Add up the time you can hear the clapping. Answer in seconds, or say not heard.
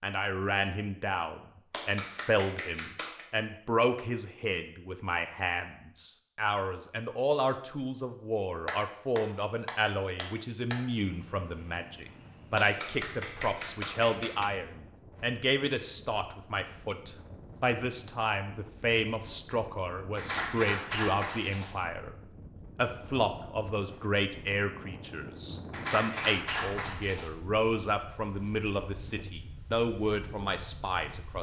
9 s.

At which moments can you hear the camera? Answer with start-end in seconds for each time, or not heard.
not heard.